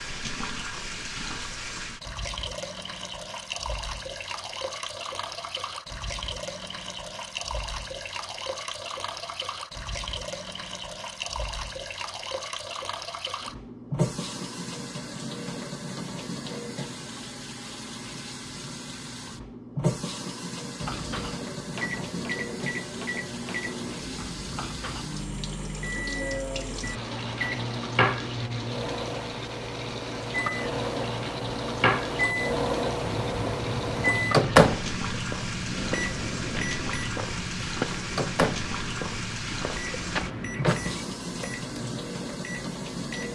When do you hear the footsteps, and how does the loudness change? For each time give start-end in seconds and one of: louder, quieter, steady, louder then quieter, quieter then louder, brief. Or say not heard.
33.0-41.0 steady.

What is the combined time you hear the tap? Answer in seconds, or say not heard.
43 s.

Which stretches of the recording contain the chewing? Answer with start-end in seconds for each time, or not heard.
not heard.